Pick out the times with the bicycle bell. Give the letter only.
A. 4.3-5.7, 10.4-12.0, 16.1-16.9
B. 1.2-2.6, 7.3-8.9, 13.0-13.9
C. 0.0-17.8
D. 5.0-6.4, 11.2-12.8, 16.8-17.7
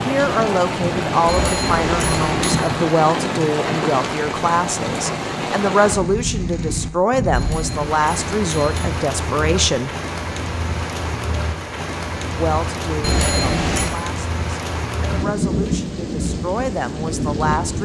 B.